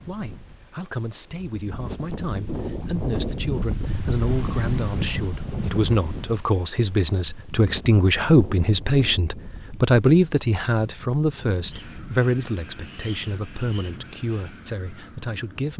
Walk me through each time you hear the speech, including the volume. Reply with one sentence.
The speech can be heard from 0.1 to 15.7 s, getting louder then quieter.